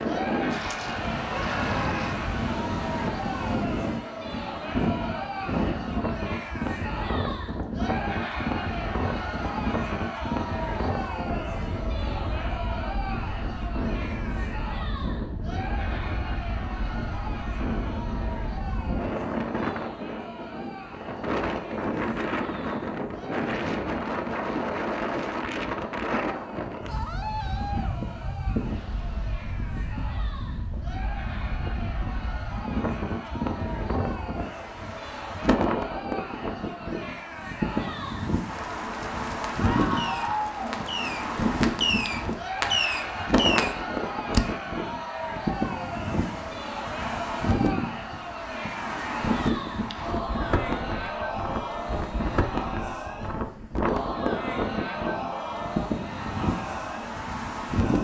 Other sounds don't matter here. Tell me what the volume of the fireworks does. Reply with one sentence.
The volume of the fireworks goes up.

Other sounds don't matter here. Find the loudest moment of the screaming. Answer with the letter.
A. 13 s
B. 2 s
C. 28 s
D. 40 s
D.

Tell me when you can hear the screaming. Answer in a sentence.
The screaming can be heard from 1.3 to 2.1 s, from 26.9 to 27.9 s and from 39.5 to 40.5 s.